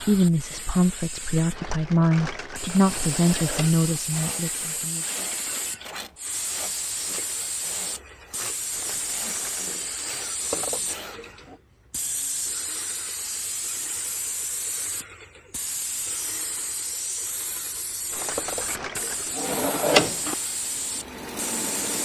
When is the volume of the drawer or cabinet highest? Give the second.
20 s.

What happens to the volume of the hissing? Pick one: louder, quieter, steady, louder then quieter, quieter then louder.
steady.